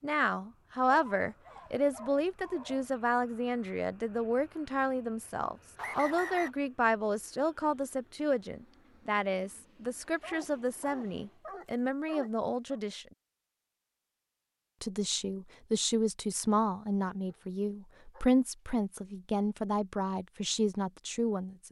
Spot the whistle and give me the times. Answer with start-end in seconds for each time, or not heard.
5.8-6.5.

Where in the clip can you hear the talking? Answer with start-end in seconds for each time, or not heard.
0.0-13.1, 14.8-21.6.